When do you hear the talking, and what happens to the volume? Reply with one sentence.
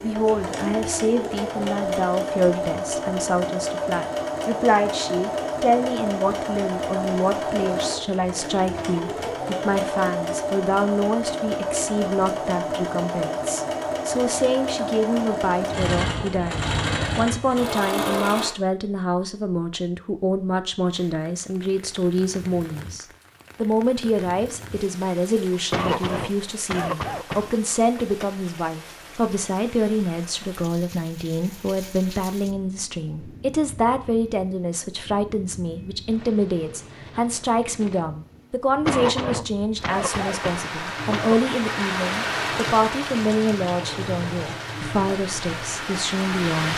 The talking can be heard from 0.0 to 46.7 s, at a steady volume.